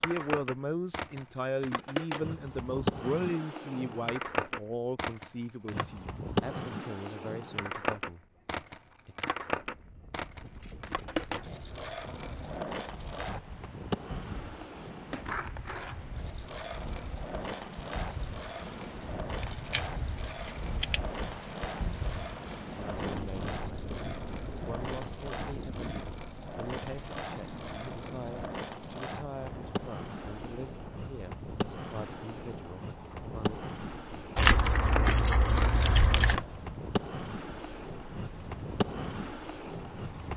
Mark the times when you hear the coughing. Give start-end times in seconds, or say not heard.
not heard.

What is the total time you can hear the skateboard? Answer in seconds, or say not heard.
40 s.